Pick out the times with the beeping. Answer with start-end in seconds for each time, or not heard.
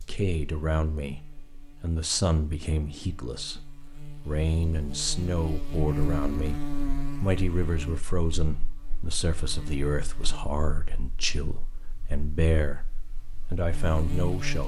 not heard.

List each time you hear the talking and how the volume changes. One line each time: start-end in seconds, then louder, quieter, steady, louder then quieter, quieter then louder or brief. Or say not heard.
0.1-14.6 steady.